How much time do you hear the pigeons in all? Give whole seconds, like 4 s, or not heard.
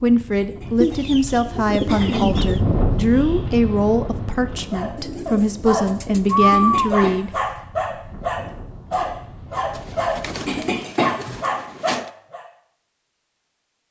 6 s.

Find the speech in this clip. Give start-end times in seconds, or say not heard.
0.0-7.4.